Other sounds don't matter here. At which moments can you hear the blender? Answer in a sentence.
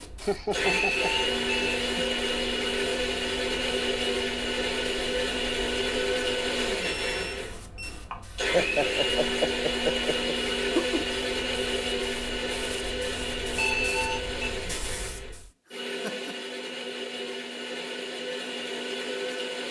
You can hear the blender from 0.0 to 19.6 s.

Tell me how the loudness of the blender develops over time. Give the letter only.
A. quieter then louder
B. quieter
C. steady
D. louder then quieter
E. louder
B.